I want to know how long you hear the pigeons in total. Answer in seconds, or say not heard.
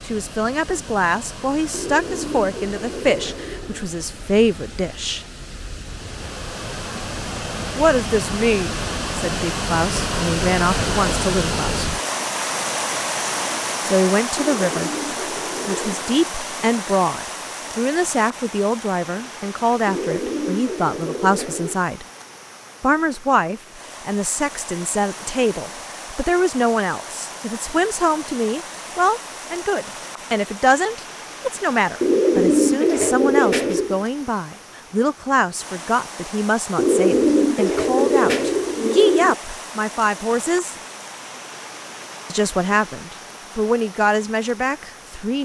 11 s.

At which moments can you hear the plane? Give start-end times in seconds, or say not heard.
not heard.